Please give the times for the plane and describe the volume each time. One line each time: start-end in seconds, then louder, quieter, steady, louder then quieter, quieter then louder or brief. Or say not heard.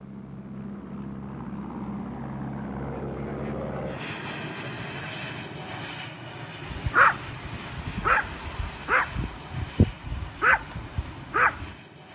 0.0-12.0 quieter.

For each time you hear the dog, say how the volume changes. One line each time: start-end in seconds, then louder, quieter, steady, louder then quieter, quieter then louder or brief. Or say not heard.
6.7-11.8 steady.